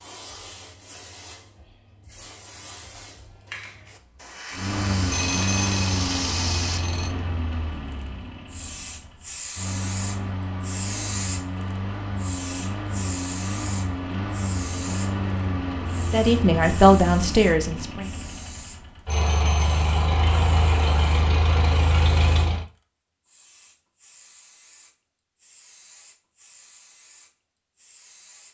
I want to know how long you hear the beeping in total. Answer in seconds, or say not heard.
3 s.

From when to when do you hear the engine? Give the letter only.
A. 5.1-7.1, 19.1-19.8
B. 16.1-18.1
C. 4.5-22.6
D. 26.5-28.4
C.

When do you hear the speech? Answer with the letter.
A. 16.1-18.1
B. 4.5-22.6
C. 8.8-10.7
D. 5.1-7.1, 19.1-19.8
A.